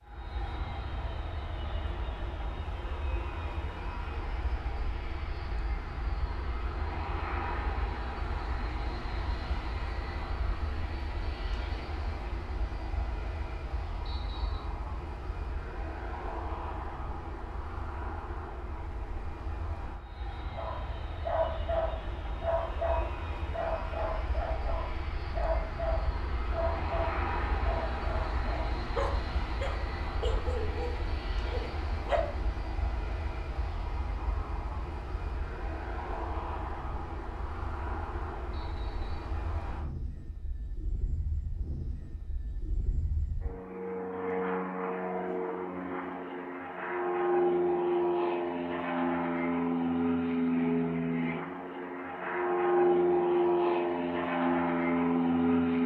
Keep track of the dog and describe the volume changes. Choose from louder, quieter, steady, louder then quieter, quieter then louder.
quieter.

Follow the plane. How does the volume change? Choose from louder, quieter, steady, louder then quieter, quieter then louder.
louder.